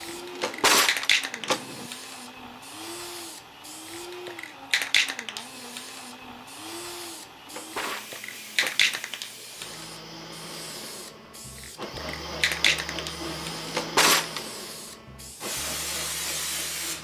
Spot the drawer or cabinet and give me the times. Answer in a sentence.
The drawer or cabinet can be heard from 0.1 to 1.9 s, from 7.2 to 9.0 s and from 13.4 to 14.4 s.